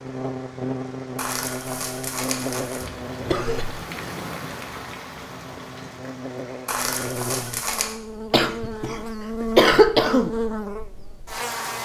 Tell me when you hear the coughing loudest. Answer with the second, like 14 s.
10 s.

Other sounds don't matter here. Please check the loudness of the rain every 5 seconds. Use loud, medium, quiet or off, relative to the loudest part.
loud, loud, off.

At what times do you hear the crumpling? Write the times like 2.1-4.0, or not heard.
1.1-2.9, 6.7-8.0.